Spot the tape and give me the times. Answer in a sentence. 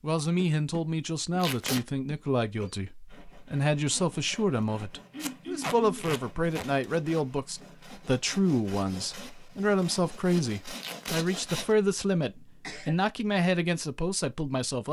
The tape can be heard from 1.4 to 1.9 s, from 5.2 to 6.7 s and from 10.8 to 11.2 s.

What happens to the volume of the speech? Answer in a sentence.
The loudness of the speech stays about the same.